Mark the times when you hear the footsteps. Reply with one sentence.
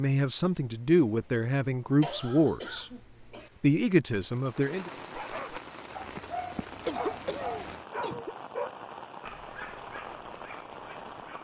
The footsteps can't be heard in this clip.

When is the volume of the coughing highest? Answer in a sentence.
The volume of the coughing peaks at 7 seconds.